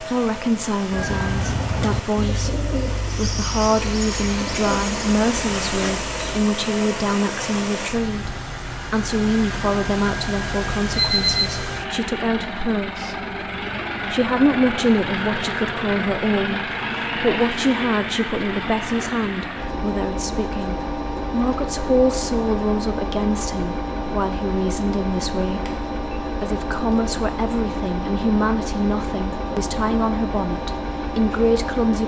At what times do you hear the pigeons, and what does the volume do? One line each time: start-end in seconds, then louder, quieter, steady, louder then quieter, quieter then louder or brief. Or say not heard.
0.9-6.5 quieter.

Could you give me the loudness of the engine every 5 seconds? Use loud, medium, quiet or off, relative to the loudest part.
medium, loud, loud, loud, loud, loud, loud.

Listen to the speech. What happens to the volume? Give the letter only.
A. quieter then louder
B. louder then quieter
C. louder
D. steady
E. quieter
D.